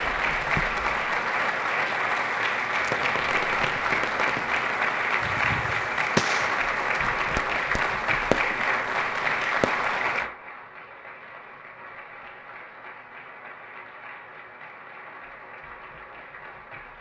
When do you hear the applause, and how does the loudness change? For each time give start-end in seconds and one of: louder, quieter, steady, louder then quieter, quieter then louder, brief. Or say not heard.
0.0-16.9 quieter.